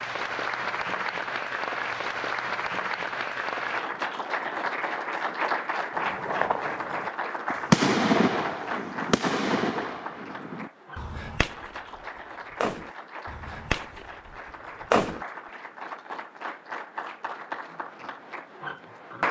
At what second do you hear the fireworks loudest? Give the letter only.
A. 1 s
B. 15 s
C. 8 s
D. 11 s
C.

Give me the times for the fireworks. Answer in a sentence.
You can hear the fireworks from 6.0 to 15.2 s.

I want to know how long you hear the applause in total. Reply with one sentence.
The applause can be heard for 19 seconds in total.